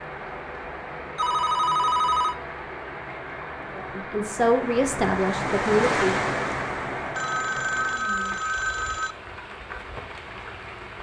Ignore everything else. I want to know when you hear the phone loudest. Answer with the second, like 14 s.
2 s.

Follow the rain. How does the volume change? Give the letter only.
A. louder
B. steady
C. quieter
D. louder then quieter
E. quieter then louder
D.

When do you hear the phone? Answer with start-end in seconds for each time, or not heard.
1.1-2.4, 7.2-9.2.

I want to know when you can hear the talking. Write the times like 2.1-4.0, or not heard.
3.8-6.2.